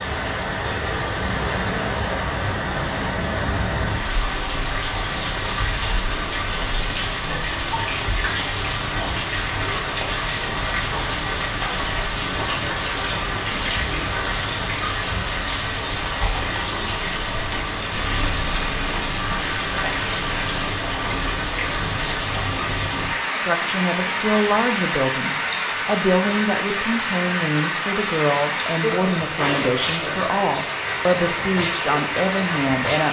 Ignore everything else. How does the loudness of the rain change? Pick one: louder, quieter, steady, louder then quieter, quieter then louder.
steady.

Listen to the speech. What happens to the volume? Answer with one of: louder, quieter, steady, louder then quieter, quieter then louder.
steady.